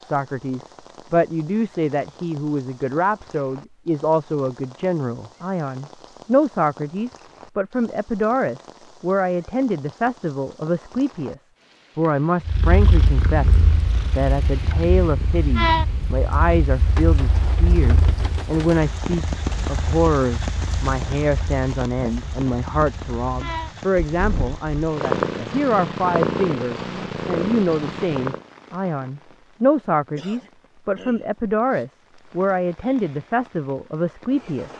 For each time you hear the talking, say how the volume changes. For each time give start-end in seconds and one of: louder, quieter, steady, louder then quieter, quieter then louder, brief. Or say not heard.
0.0-34.7 steady.